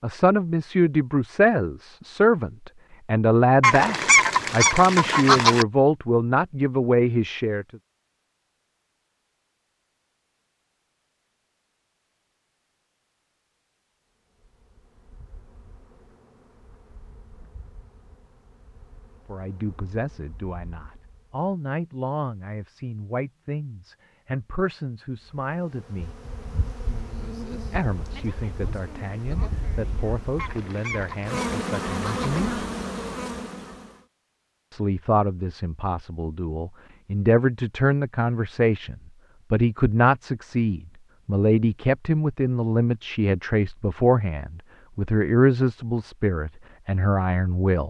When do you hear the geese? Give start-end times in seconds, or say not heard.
3.6-5.7, 30.4-32.4.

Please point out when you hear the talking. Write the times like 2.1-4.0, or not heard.
0.0-7.7, 19.2-26.1, 27.6-32.6, 34.7-47.8.